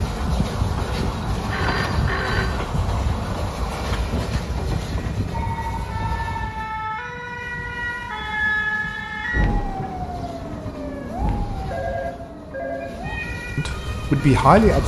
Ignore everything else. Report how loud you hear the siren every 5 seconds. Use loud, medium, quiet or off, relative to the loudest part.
medium, loud, medium.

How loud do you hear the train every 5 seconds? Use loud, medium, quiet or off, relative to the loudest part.
loud, medium, medium.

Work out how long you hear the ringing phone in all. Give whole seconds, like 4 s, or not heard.
4 s.